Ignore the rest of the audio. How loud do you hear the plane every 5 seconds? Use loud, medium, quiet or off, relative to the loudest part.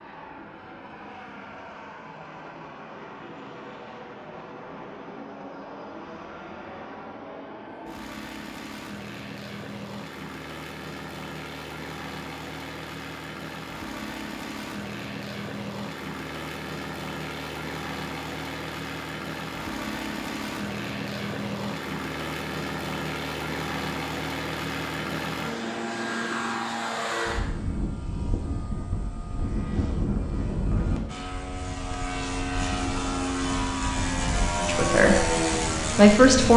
quiet, quiet, medium, medium, medium, medium, loud, loud.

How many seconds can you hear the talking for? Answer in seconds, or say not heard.
2 s.